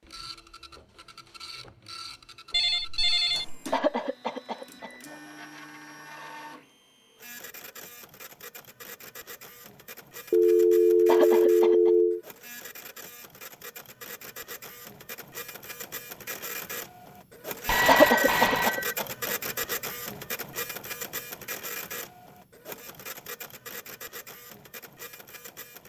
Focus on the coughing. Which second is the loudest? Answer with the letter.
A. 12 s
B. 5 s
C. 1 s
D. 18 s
D.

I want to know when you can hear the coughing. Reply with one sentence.
You can hear the coughing from 3.7 to 5.2 s, from 11.1 to 11.9 s and from 17.9 to 19.3 s.